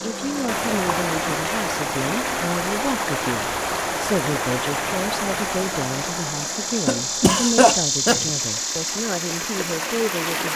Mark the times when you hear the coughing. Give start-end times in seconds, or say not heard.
6.8-8.4.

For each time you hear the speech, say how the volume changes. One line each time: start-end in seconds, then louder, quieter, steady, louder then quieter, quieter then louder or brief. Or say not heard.
0.0-10.5 steady.